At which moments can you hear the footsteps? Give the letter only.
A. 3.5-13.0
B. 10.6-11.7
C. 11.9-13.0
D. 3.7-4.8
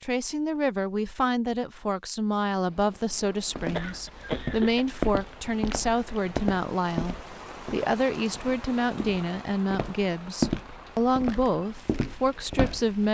A.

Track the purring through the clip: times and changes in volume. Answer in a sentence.
The purring can't be heard in this clip.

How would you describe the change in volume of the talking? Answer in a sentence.
The volume of the talking stays about the same.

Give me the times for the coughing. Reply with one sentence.
The coughing can be heard from 3.7 to 4.8 s.